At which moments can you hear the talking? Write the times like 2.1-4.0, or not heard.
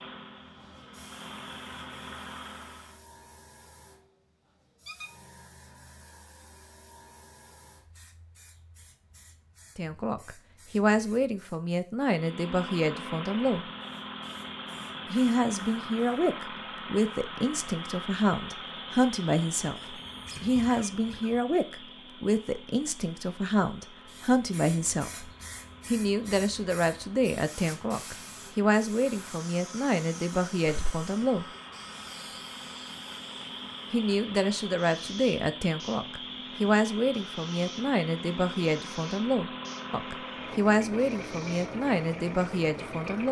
9.8-13.7, 15.1-31.4, 33.9-43.2.